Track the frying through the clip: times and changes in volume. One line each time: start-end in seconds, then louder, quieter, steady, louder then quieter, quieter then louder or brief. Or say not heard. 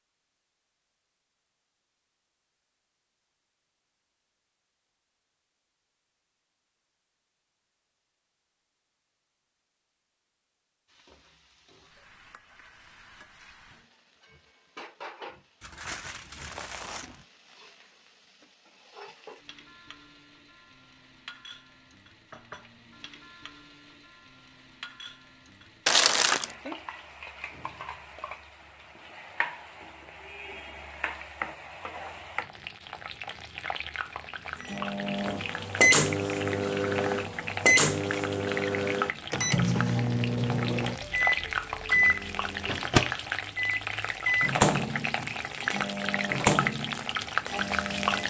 10.8-48.2 louder.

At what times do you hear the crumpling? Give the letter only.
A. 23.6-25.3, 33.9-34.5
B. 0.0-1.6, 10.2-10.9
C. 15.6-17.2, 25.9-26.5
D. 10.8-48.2
C.